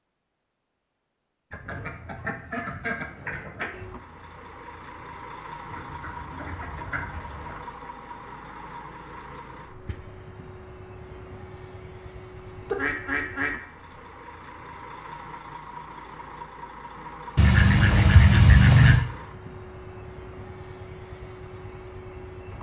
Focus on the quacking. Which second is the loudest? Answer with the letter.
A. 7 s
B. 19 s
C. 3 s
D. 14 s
B.